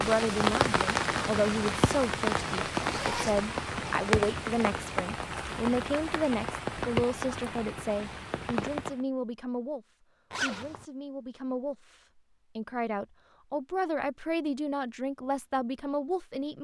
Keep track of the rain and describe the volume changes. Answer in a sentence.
The volume of the rain goes down.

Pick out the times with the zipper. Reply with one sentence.
You can hear the zipper from 2.8 to 3.5 s and from 10.3 to 10.8 s.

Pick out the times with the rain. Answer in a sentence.
You can hear the rain from 0.0 to 9.1 s.